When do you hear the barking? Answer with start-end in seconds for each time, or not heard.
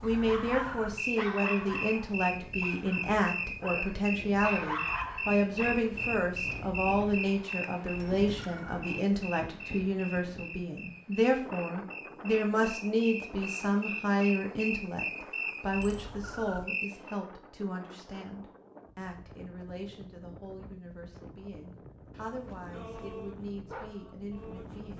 0.0-5.9, 22.4-24.9.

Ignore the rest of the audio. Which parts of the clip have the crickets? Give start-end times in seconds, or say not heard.
0.0-17.1.